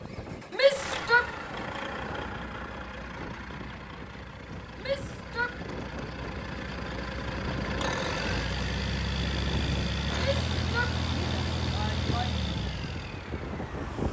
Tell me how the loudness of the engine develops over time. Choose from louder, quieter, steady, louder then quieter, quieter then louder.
quieter then louder.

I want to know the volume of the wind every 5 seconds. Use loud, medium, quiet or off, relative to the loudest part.
medium, loud, loud.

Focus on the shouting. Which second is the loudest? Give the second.
1 s.